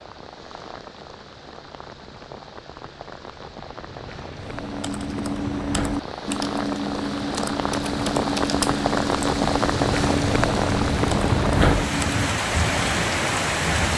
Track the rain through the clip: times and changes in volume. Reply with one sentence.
You can hear the rain from 0.0 to 13.9 s, getting louder.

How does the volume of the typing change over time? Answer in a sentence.
The loudness of the typing stays about the same.